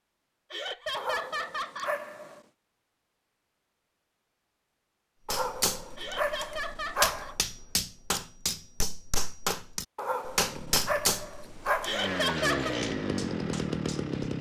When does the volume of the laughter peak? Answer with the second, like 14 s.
12 s.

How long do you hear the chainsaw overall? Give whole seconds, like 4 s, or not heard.
4 s.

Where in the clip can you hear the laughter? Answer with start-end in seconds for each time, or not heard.
0.5-1.9, 6.0-7.3, 11.8-12.8.